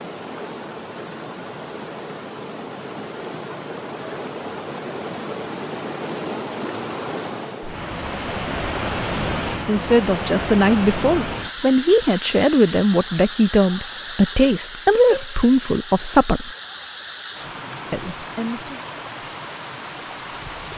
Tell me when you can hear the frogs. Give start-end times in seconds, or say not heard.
not heard.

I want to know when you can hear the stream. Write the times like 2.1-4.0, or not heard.
0.0-20.7.